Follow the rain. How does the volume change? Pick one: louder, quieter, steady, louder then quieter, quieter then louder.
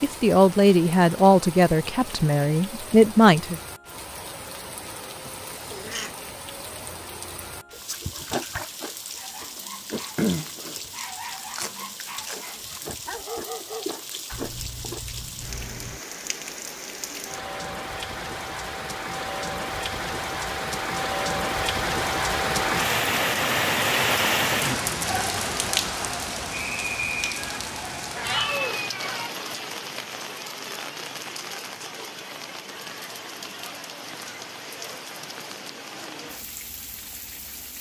louder then quieter.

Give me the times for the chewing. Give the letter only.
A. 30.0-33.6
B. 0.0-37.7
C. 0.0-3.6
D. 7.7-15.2
D.